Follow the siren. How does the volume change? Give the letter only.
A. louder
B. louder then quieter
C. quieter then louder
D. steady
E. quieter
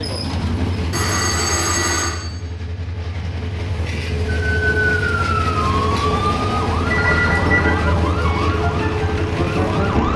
D.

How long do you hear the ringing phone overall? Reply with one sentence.
The ringing phone can be heard for 2 seconds in total.